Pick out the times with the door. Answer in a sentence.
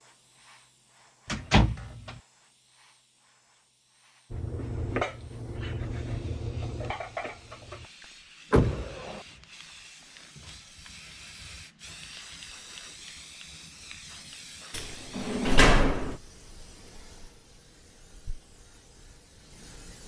You can hear the door from 1.2 to 2.1 s, from 8.5 to 9.2 s and from 14.7 to 16.1 s.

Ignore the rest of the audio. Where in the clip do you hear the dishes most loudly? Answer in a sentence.
The loudest moment of the dishes is at 5 seconds.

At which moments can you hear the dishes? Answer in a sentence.
You can hear the dishes from 4.3 to 8.1 s.